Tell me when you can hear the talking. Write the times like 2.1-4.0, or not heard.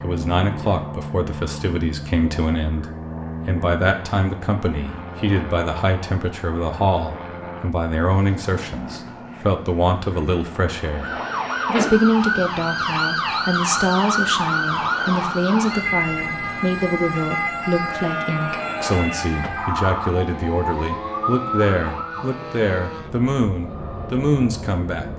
0.0-25.1.